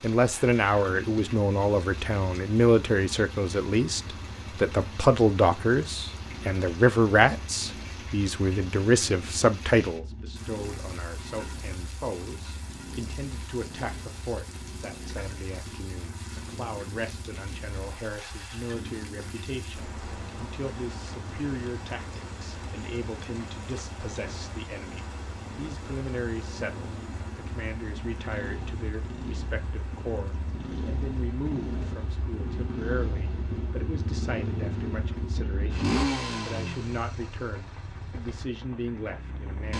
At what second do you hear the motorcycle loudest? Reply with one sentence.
The loudest moment of the motorcycle is at 36 seconds.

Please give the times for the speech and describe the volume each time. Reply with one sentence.
The speech can be heard from 0.0 to 39.7 s, getting quieter.